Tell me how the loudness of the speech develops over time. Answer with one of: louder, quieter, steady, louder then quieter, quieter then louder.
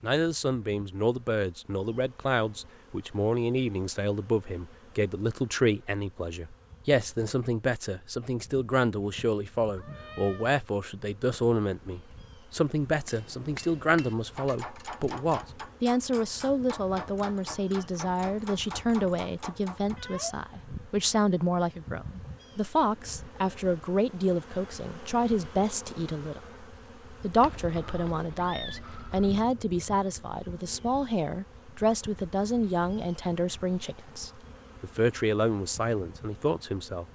steady.